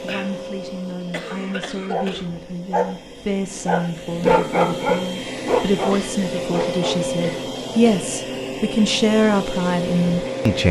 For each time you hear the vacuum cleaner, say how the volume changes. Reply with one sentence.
You can hear the vacuum cleaner from 0.0 to 10.6 s, getting louder.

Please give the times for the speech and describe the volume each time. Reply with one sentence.
You can hear the speech from 0.0 to 10.6 s, getting louder.